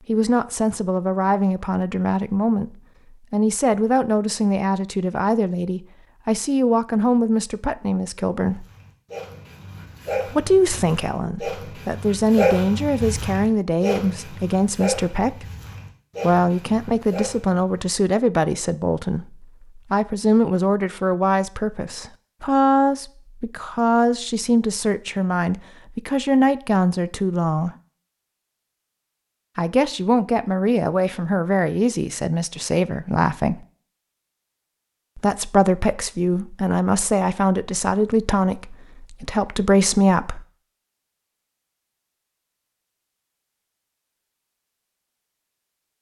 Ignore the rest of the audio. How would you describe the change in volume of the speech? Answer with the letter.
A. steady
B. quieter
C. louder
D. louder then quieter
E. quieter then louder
A.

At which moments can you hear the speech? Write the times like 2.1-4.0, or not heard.
0.1-8.7, 10.3-15.4, 16.2-27.8, 29.6-33.6, 35.1-40.5.